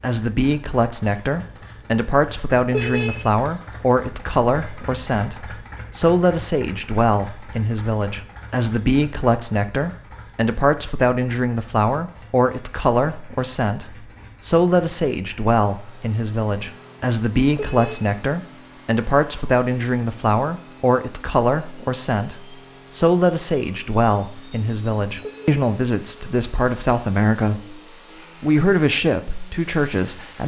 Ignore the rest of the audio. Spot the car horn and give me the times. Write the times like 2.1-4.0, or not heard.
2.7-3.3, 17.5-18.1, 25.2-25.6.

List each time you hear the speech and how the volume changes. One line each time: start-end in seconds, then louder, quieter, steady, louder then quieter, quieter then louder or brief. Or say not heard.
0.0-27.8 steady
28.4-30.4 brief.